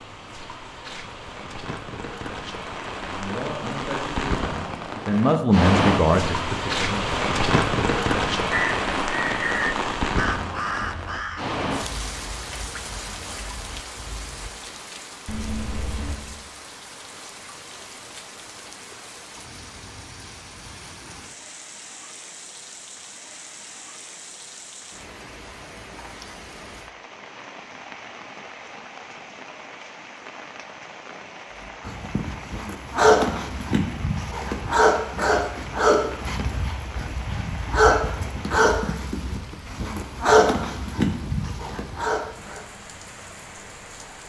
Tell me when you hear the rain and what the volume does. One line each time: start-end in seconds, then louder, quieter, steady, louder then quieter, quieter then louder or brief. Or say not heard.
0.0-44.2 quieter.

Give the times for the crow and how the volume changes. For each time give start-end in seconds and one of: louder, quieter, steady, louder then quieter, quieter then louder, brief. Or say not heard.
8.5-14.5 quieter.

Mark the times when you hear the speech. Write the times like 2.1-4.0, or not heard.
3.0-7.2.